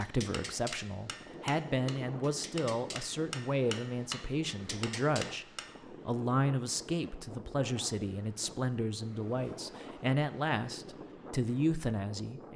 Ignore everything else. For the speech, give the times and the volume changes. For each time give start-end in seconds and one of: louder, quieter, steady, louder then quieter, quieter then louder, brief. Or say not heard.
0.0-12.5 steady.